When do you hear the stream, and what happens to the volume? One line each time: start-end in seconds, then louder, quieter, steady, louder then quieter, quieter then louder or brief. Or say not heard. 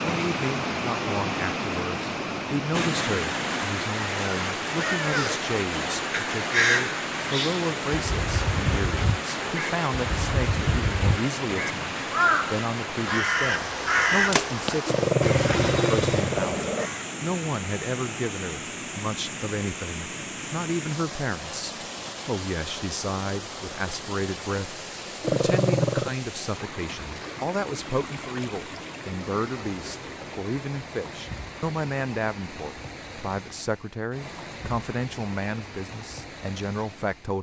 0.0-37.3 quieter.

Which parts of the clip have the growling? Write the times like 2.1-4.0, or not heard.
14.8-16.9, 25.2-26.1.